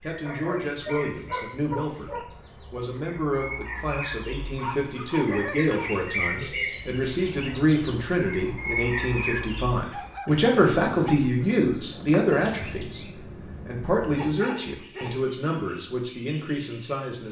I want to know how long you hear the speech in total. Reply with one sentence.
The speech can be heard for 17 seconds in total.